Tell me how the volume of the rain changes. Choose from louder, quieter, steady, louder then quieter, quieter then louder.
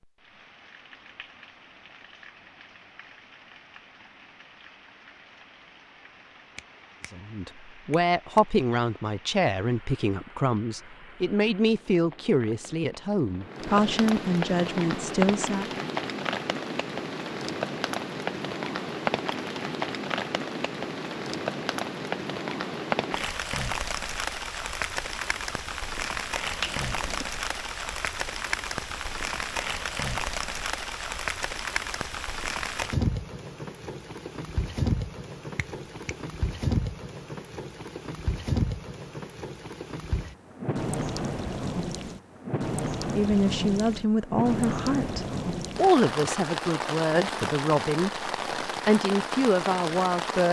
louder.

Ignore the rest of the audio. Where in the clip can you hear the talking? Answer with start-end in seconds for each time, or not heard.
7.1-15.8, 43.1-50.4.